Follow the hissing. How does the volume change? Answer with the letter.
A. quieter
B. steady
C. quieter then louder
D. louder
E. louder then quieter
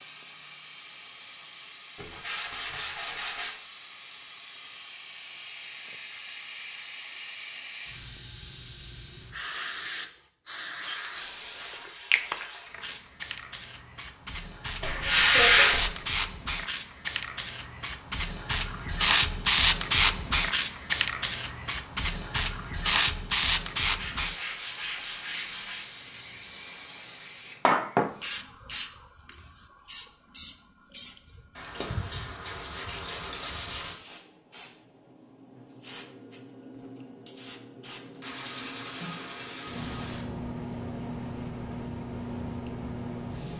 E.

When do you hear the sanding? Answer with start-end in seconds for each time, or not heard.
1.9-3.5, 10.9-13.0, 14.8-15.9, 23.9-25.9, 31.6-34.0, 38.2-40.2.